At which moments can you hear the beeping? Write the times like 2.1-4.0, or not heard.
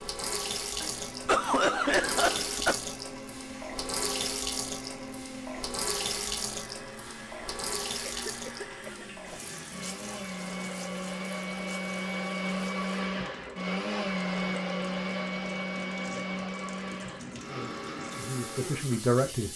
not heard.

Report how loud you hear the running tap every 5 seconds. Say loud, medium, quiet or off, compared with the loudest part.
loud, loud, quiet, medium.